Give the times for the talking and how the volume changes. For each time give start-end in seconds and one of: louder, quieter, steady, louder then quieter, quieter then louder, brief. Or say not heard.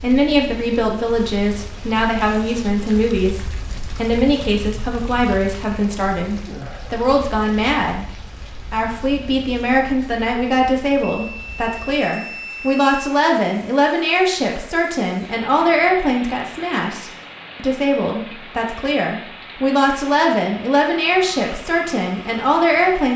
0.0-8.1 steady
8.7-23.1 steady.